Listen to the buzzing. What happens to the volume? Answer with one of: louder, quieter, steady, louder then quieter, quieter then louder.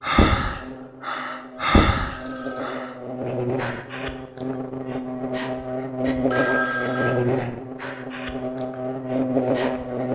louder.